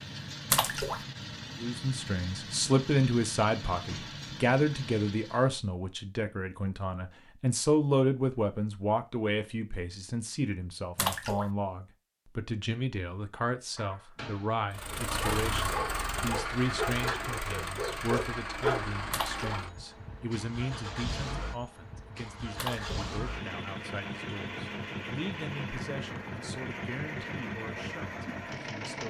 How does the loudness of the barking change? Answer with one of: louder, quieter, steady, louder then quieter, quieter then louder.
louder.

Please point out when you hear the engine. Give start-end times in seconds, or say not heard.
0.0-5.5, 14.7-29.0.